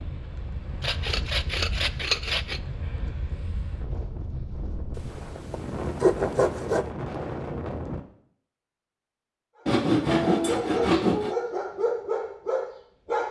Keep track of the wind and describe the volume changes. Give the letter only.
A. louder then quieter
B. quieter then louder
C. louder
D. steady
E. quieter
C.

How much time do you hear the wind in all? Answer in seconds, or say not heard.
8 s.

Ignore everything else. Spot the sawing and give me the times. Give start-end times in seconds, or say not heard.
0.8-2.6, 5.0-6.8, 9.7-11.3.